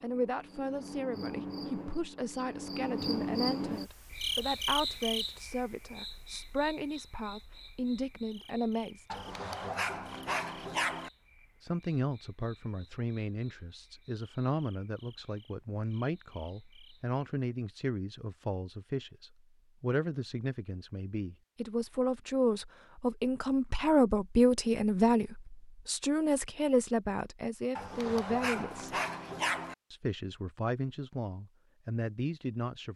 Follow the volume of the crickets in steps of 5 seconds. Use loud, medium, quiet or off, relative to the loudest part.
loud, medium, quiet, quiet, off, off, off.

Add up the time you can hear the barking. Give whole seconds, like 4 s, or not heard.
4 s.